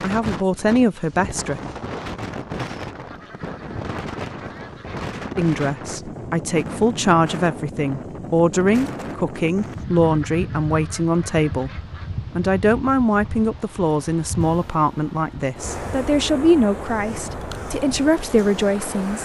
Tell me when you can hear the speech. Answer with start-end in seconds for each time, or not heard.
0.0-1.6, 5.3-11.7, 12.3-19.2.